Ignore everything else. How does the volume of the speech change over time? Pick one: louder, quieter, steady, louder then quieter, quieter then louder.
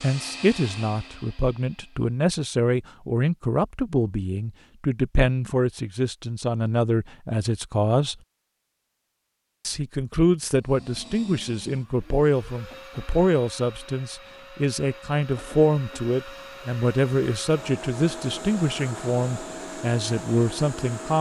steady.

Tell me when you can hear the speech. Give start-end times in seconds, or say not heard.
0.0-8.2, 9.7-21.1.